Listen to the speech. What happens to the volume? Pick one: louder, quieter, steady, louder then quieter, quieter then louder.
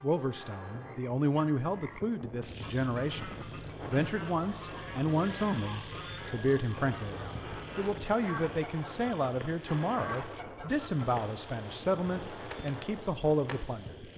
steady.